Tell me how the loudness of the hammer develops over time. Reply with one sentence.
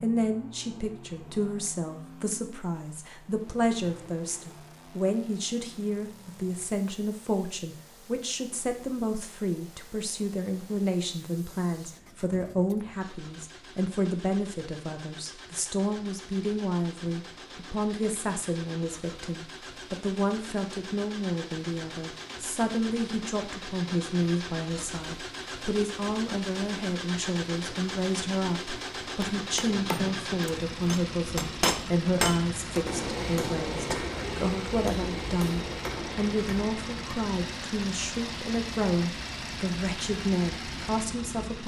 The loudness of the hammer goes up, then down.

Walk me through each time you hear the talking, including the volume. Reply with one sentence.
The talking can be heard from 0.0 to 41.6 s, at a steady volume.